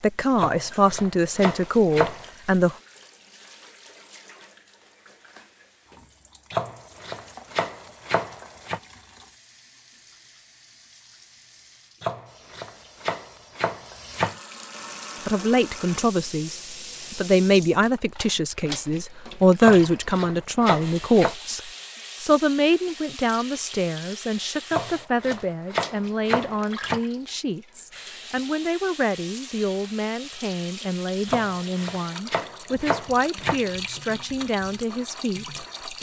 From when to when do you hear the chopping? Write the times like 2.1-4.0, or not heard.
0.3-2.3, 6.5-8.8, 12.0-14.3, 19.6-21.4, 24.7-27.0, 31.2-33.5.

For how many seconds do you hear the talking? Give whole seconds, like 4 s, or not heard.
23 s.